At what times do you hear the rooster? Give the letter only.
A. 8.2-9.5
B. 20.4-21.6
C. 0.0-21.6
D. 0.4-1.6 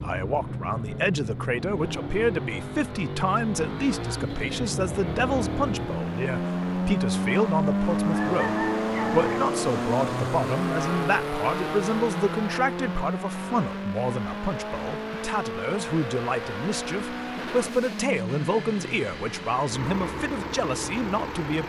A.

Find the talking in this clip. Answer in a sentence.
You can hear the talking from 0.0 to 21.6 s.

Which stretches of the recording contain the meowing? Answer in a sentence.
The meowing can't be heard in this clip.